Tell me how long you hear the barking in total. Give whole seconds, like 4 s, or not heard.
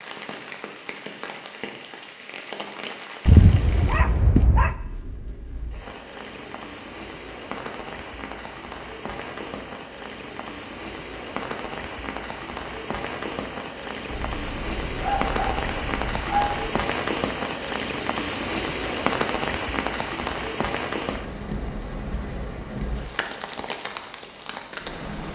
4 s.